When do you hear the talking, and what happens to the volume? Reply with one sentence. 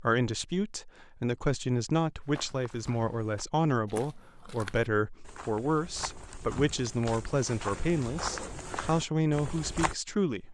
The talking can be heard from 0.0 to 10.4 s, at a steady volume.